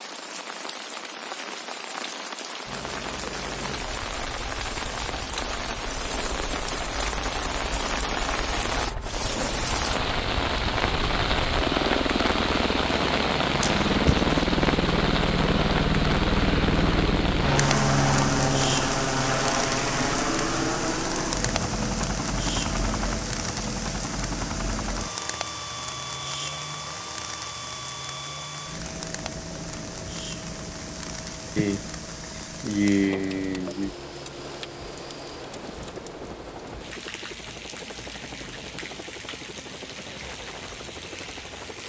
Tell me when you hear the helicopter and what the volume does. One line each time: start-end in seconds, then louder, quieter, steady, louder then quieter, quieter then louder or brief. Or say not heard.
2.6-41.8 louder then quieter.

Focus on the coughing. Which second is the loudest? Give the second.
33 s.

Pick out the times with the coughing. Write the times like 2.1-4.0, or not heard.
13.6-14.3, 31.6-33.9.